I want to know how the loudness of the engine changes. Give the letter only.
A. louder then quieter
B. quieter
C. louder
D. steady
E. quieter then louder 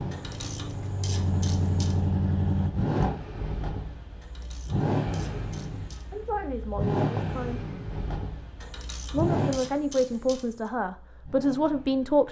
B.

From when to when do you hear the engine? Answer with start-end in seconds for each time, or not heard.
0.0-12.2.